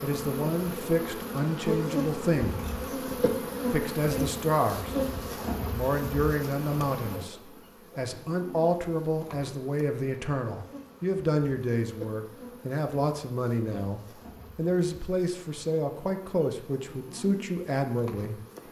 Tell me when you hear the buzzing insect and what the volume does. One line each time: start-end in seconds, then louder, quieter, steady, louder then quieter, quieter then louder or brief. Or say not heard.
0.0-18.6 quieter.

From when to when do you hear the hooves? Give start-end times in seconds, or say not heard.
not heard.